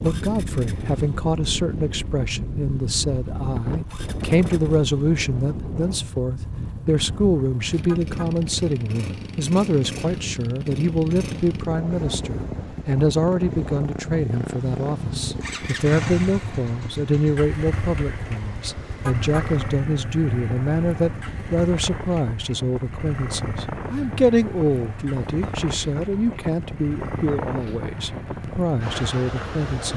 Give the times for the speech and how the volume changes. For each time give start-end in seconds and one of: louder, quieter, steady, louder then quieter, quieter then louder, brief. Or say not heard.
0.0-29.9 steady.